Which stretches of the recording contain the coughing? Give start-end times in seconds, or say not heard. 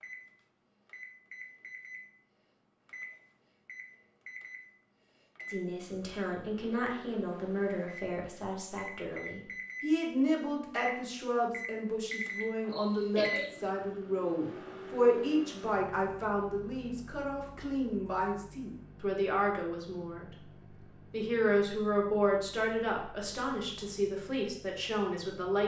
12.4-13.5.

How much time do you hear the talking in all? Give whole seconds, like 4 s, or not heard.
19 s.